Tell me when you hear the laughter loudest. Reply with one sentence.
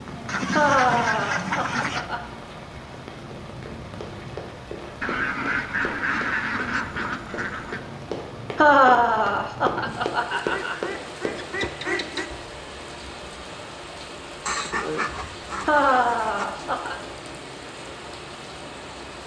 The loudest moment of the laughter is at 9 seconds.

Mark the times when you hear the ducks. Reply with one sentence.
The ducks can be heard from 0.2 to 2.0 s, from 5.0 to 7.8 s, from 10.3 to 12.3 s and from 14.4 to 16.4 s.